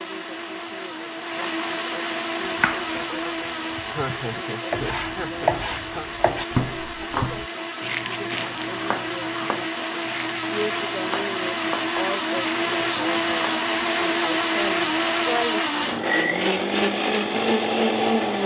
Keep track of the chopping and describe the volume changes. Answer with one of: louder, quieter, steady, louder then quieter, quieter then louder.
louder then quieter.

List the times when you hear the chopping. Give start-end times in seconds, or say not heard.
2.4-13.7.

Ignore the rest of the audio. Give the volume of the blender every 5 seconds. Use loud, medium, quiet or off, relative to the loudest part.
medium, medium, loud, loud.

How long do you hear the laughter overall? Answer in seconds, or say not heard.
2 s.